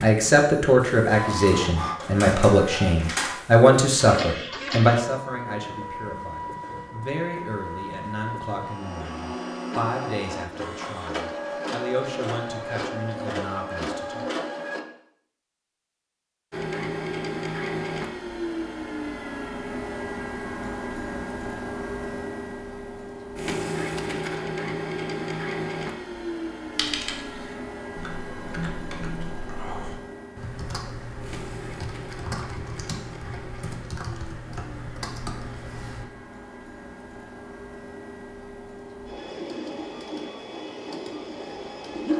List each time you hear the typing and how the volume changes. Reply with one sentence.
You can hear the typing from 26.8 to 36.0 s, at a steady volume.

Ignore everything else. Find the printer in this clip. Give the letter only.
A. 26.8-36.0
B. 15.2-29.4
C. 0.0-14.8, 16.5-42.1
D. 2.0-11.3
C.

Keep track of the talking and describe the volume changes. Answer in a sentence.
The volume of the talking goes down.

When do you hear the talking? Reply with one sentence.
The talking can be heard from 0.0 to 14.2 s.